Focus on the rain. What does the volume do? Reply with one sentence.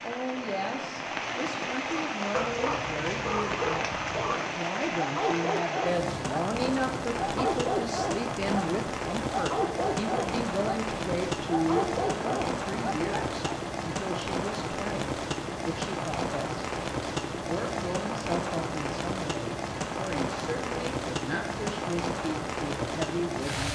The volume of the rain stays about the same.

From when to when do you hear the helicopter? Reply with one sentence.
The helicopter can't be heard in this clip.